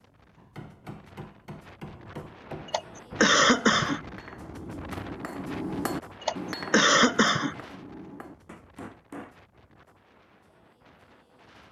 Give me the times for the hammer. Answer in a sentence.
You can hear the hammer from 0.3 to 9.3 s.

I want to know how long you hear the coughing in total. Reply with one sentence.
The coughing can be heard for 3 seconds in total.